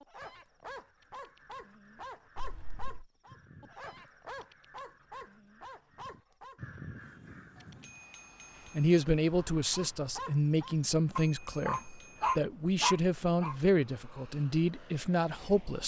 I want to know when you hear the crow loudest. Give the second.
7 s.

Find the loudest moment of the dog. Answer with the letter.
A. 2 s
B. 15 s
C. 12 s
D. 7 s
C.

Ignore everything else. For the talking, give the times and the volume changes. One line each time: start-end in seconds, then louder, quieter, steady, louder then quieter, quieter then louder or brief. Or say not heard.
8.8-15.8 steady.